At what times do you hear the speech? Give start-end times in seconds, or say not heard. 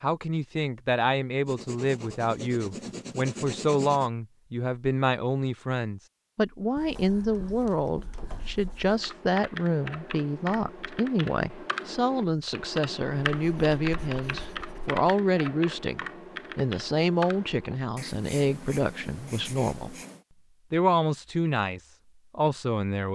0.0-19.9, 20.7-23.1.